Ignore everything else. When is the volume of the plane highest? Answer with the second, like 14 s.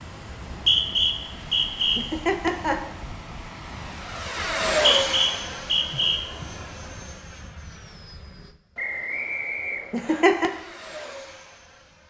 5 s.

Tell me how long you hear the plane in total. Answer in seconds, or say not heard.
12 s.